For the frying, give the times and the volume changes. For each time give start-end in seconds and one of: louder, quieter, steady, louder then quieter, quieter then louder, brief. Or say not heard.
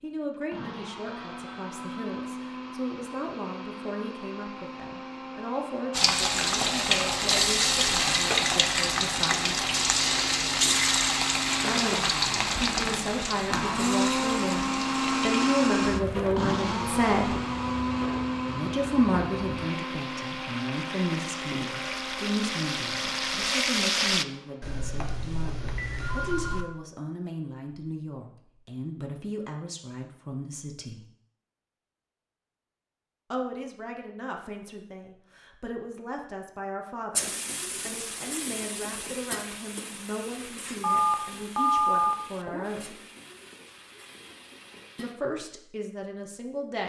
5.9-24.2 quieter then louder
37.1-45.1 quieter.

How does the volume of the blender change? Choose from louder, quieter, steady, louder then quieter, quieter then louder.
louder then quieter.